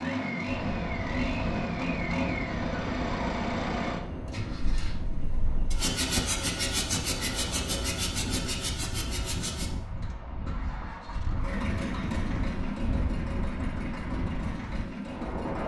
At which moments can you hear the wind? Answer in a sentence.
You can hear the wind from 0.0 to 15.6 s.